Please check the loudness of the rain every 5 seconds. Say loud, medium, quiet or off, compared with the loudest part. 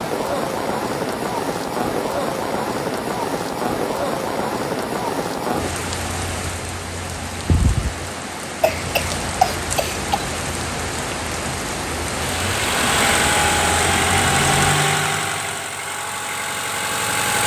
loud, loud, loud, off.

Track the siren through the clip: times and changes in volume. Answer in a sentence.
You can't hear the siren here.